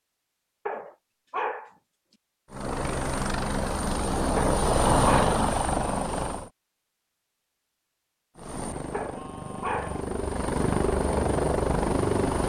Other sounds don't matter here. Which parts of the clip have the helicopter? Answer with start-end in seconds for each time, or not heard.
2.5-6.5, 8.3-12.4.